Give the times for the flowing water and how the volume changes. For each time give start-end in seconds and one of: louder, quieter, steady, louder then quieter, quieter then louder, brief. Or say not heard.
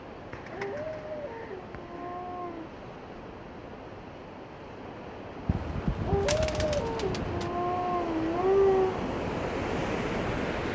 0.0-10.6 louder.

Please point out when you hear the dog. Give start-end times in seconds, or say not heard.
0.5-2.7, 6.0-9.0.